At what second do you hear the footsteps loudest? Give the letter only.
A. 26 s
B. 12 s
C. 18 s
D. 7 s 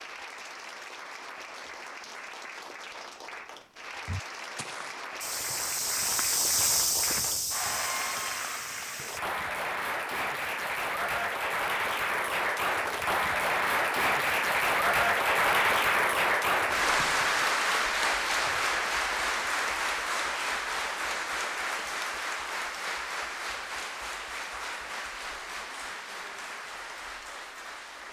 D.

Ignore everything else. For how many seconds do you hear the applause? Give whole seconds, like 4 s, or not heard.
28 s.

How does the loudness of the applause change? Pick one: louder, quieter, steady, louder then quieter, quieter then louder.
louder then quieter.